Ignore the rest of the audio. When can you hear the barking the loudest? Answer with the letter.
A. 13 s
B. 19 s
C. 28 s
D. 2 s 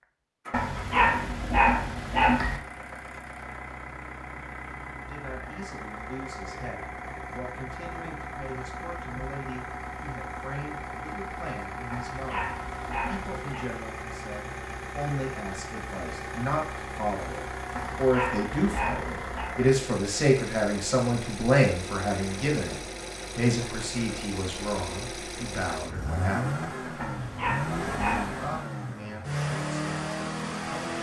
D.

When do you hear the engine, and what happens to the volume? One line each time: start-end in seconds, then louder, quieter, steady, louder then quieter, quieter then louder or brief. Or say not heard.
0.0-30.9 louder.